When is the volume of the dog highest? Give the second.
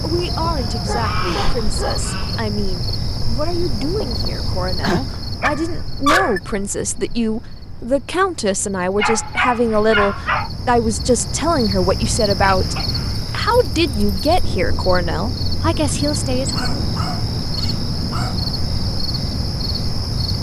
6 s.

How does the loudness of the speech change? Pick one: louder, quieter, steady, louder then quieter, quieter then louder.
louder.